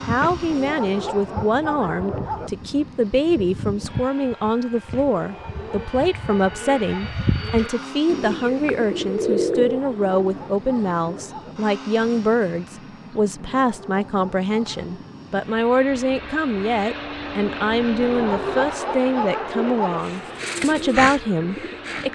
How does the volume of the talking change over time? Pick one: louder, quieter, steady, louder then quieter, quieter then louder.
steady.